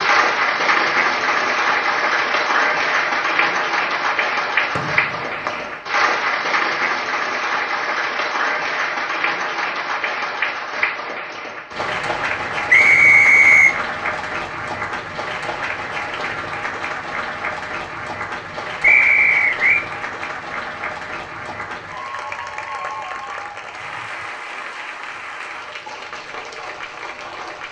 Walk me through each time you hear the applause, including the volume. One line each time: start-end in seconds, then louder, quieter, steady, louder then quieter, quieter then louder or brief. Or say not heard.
0.0-27.6 quieter.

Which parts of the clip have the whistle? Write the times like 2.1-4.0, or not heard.
4.8-5.7, 12.7-13.8, 18.8-19.9.